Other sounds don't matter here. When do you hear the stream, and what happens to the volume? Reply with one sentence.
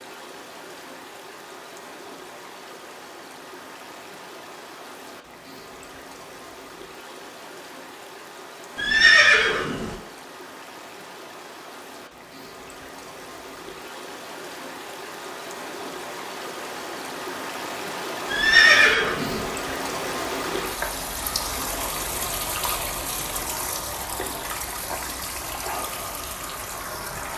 The stream can be heard from 0.0 to 27.3 s, getting louder.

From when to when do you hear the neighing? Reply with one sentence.
The neighing can be heard from 8.8 to 9.9 s and from 18.3 to 19.5 s.